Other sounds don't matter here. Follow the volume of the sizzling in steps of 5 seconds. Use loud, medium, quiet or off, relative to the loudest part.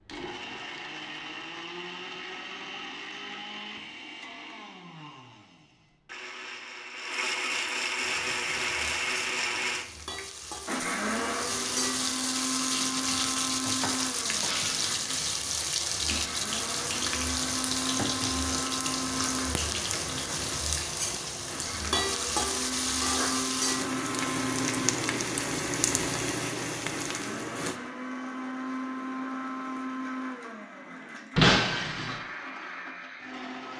off, quiet, loud, loud, loud, loud, off.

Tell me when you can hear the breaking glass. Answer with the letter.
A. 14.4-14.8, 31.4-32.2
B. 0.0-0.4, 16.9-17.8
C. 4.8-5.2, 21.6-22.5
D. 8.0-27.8
A.